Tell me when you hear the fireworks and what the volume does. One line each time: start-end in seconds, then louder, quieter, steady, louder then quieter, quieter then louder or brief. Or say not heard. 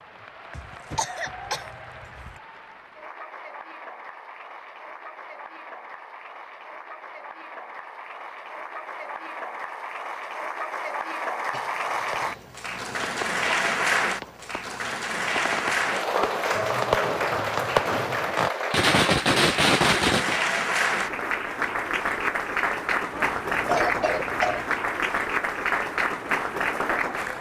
11.9-20.4 louder.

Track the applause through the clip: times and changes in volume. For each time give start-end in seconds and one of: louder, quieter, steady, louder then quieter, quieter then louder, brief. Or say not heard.
0.0-27.3 louder.